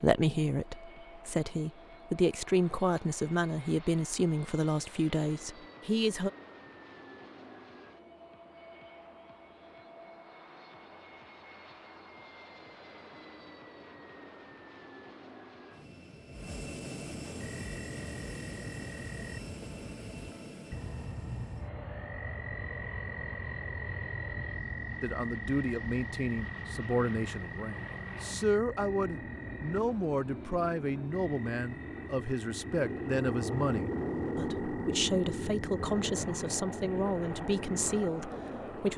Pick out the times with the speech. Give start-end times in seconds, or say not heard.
0.0-6.3, 25.0-38.9.